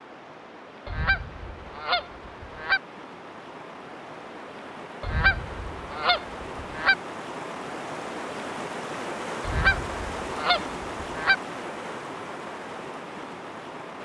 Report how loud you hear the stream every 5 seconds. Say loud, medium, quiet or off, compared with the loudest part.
medium, loud, loud.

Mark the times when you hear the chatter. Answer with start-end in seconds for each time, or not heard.
not heard.